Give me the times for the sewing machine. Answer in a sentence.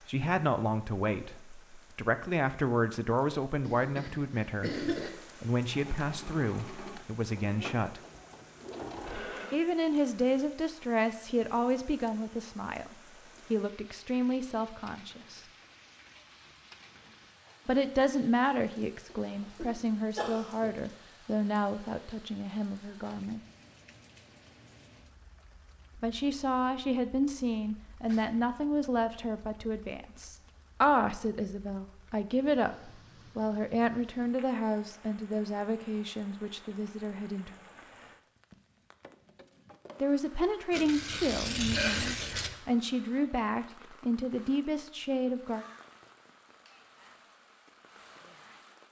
The sewing machine can be heard from 5.7 to 9.6 s.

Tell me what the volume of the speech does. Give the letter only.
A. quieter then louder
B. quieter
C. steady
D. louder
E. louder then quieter
C.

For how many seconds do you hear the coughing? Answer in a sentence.
The coughing can be heard for 4 seconds in total.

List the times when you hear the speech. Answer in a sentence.
The speech can be heard from 0.1 to 8.0 s, from 9.5 to 15.4 s, from 17.6 to 23.4 s, from 26.0 to 37.5 s and from 40.0 to 45.6 s.